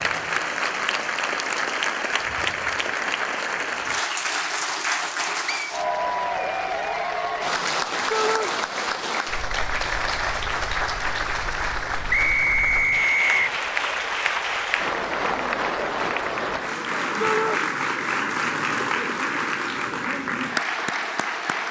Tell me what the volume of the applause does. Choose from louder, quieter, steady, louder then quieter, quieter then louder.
steady.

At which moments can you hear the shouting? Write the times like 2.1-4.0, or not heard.
8.1-8.5, 17.2-17.6.